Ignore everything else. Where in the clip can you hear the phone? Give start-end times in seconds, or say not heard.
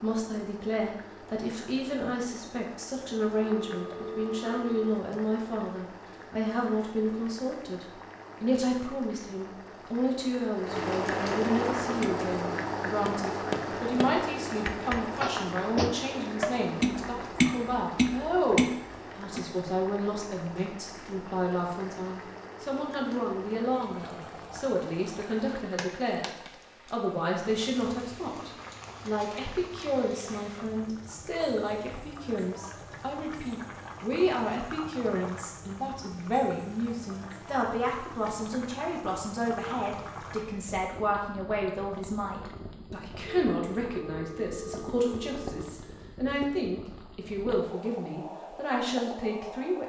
3.4-5.0, 43.2-45.8.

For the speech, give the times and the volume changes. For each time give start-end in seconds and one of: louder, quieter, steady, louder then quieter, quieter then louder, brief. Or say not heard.
0.0-26.3 steady
26.9-49.8 steady.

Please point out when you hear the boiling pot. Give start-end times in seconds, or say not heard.
0.0-49.8.